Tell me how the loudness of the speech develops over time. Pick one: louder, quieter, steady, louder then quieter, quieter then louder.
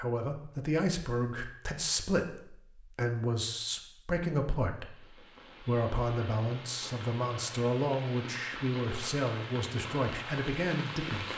steady.